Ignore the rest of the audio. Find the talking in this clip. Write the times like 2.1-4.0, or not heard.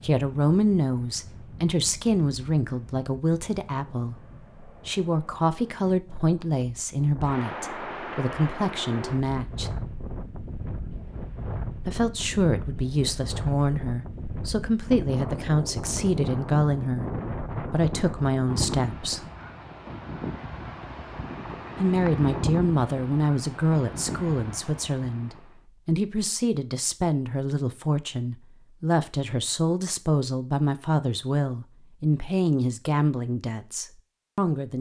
0.0-9.7, 11.8-19.2, 21.8-34.7.